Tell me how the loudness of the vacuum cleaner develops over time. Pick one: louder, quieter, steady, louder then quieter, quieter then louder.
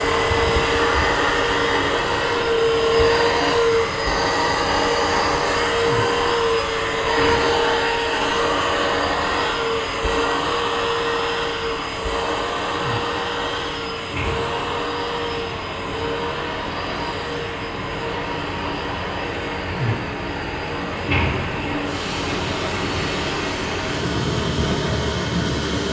quieter.